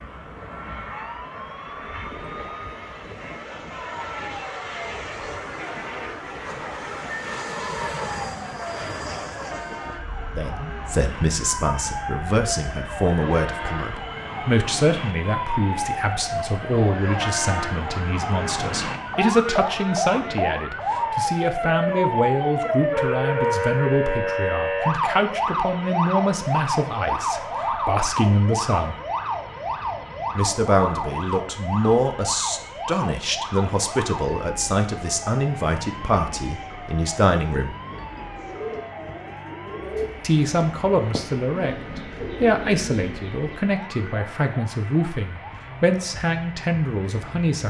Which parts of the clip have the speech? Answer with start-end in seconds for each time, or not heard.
10.3-29.0, 30.4-37.8, 40.2-47.6.